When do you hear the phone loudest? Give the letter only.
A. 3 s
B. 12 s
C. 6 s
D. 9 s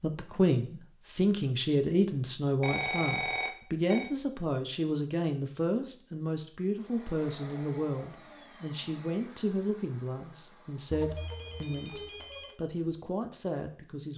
A.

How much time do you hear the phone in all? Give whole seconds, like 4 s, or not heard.
3 s.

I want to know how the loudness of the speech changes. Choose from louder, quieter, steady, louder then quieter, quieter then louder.
quieter.